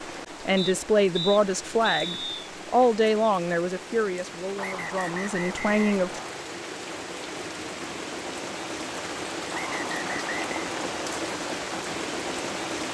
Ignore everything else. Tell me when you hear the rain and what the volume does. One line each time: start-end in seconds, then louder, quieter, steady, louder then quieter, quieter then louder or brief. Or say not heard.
0.0-12.8 louder.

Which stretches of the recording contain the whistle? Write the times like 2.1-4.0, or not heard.
0.6-2.3, 4.5-6.4, 9.5-10.5.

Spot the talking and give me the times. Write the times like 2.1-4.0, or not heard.
0.5-6.2.